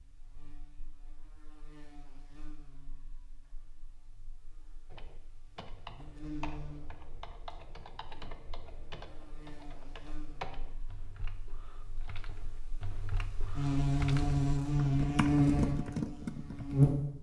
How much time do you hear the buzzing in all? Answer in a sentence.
You can hear the buzzing for 17 seconds altogether.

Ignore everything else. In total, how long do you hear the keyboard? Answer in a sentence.
The keyboard can be heard for 12 seconds in total.